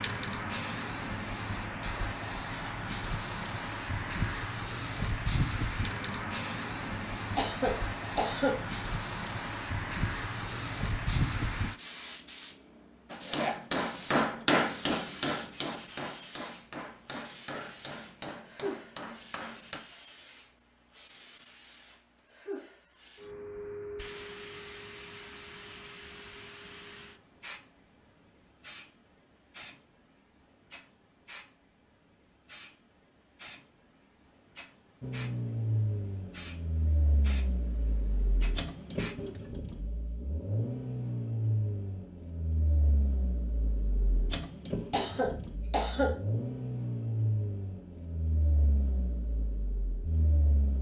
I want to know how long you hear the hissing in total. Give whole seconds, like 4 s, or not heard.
39 s.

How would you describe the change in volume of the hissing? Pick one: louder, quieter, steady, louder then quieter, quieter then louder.
quieter.